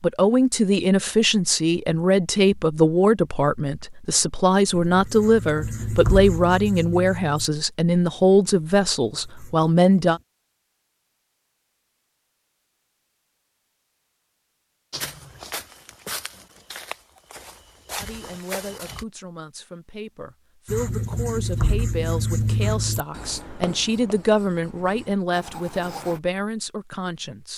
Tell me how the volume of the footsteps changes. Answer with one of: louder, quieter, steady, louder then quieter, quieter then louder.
steady.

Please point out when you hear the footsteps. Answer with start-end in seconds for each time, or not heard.
14.9-19.1.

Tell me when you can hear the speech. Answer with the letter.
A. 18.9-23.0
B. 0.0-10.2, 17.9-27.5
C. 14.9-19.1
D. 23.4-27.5
B.